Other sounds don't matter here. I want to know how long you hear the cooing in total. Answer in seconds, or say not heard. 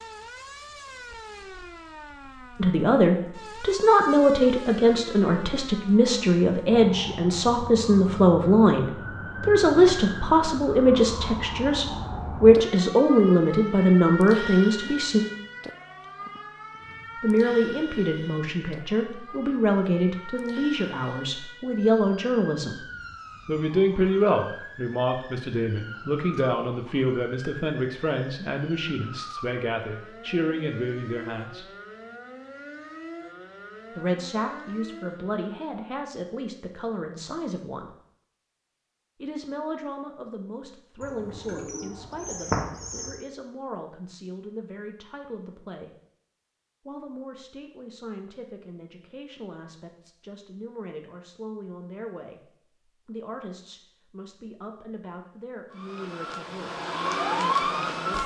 2 s.